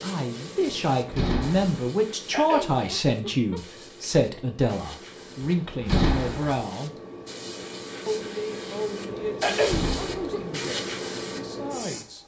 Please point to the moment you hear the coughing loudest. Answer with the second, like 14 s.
10 s.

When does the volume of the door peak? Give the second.
6 s.